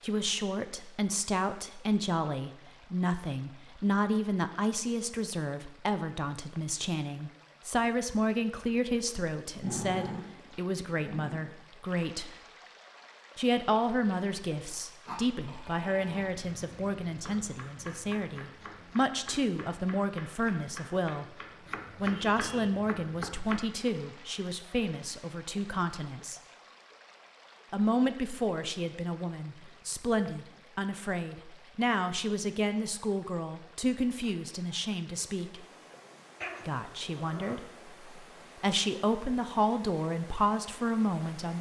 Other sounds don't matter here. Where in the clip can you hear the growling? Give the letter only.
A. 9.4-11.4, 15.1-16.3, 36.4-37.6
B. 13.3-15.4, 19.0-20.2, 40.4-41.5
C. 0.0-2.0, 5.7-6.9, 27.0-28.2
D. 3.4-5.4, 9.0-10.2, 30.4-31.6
A.